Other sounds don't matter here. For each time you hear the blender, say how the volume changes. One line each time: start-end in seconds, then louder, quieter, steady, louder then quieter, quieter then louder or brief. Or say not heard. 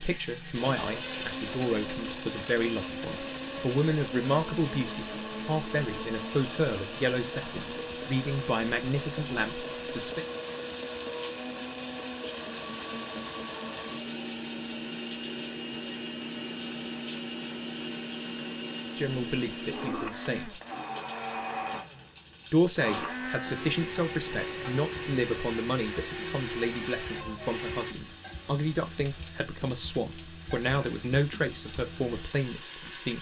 0.0-27.9 steady.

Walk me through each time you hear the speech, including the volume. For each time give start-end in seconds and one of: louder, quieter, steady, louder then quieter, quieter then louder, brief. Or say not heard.
0.0-10.2 steady
18.9-20.6 brief
22.5-33.1 steady.